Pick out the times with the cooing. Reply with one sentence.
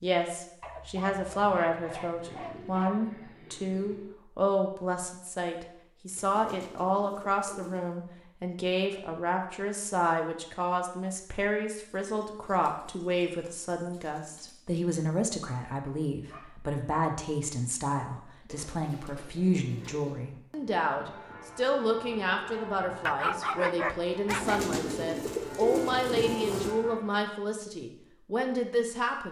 The cooing can be heard from 1.4 to 4.1 s, from 6.2 to 8.0 s, from 12.0 to 14.6 s, from 18.4 to 20.2 s and from 24.2 to 26.8 s.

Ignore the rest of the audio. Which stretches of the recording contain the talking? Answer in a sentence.
You can hear the talking from 0.0 to 29.2 s.